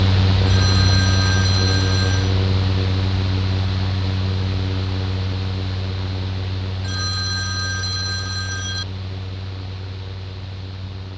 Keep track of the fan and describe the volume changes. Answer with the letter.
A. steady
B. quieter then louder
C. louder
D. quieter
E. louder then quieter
D.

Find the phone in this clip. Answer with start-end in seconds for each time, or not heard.
0.5-2.4, 6.8-8.8.